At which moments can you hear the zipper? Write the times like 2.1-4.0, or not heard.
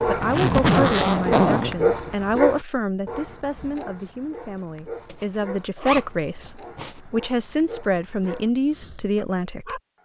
0.2-1.8, 5.0-7.0.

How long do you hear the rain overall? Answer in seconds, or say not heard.
not heard.